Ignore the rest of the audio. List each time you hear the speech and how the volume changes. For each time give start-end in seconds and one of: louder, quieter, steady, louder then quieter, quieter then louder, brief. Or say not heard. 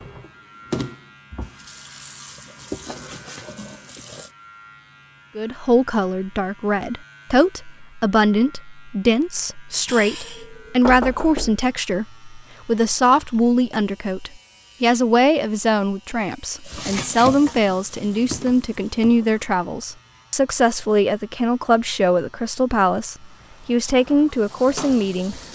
5.3-25.4 steady.